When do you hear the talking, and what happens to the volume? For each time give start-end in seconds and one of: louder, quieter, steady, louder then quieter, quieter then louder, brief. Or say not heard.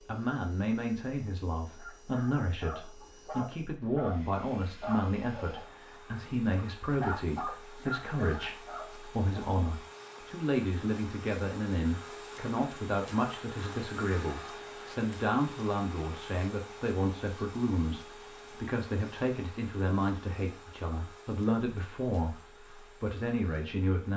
0.0-24.1 steady.